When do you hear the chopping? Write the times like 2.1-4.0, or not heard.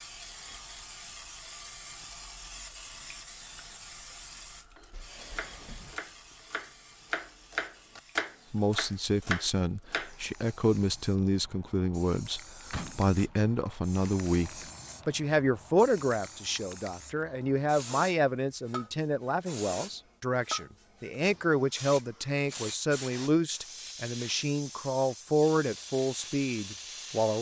4.8-10.2.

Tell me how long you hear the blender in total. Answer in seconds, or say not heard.
not heard.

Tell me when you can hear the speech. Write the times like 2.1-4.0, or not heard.
8.5-27.3.